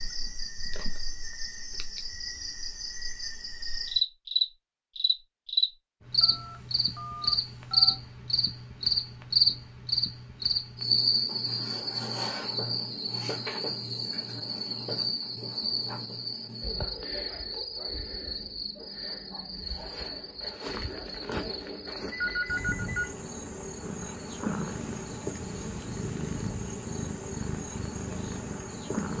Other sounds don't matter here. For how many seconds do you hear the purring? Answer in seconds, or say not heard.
5 s.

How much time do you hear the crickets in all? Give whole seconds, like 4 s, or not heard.
29 s.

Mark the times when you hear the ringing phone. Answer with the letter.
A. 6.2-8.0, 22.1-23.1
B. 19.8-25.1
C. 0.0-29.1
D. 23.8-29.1
A.